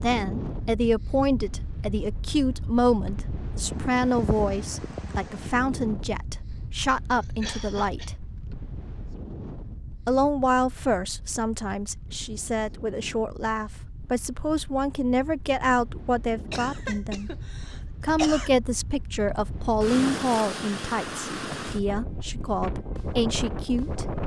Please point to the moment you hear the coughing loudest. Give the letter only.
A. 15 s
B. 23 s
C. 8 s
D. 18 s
D.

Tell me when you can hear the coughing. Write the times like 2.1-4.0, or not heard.
7.2-8.2, 16.5-18.5.